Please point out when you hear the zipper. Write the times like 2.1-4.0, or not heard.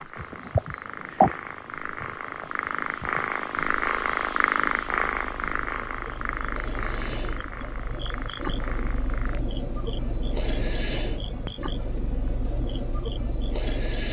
not heard.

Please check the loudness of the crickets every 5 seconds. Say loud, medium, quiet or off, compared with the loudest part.
loud, medium, loud.